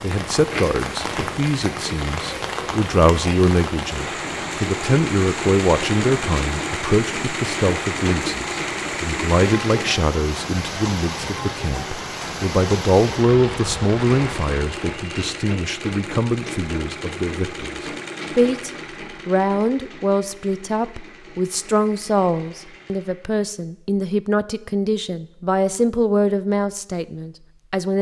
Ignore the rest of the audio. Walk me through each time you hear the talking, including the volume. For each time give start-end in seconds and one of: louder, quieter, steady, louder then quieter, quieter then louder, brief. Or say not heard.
0.0-27.9 steady.